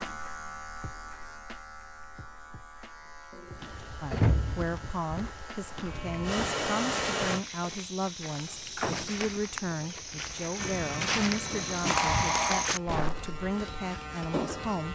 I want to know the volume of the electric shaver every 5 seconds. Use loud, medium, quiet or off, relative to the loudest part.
medium, loud, loud.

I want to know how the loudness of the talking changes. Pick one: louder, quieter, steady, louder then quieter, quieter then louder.
steady.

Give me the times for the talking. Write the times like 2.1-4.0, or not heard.
4.0-14.9.